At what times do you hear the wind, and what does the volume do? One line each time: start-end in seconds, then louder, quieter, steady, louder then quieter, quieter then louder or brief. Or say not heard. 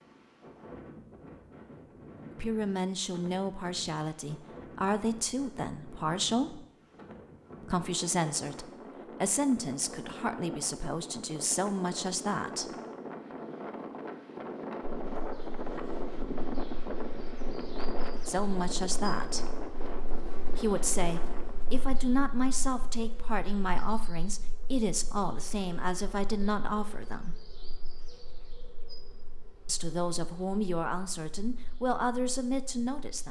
0.0-21.9 louder.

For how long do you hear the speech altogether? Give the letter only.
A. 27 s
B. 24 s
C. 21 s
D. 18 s
C.